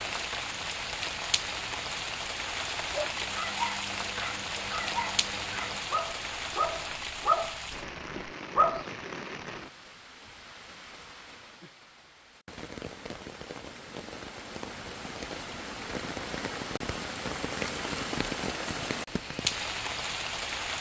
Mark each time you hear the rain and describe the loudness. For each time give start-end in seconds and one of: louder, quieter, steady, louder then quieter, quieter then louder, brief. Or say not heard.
0.0-20.7 quieter then louder.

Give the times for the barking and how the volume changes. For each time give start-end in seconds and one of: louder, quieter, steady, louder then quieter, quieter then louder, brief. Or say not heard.
2.9-8.8 louder then quieter.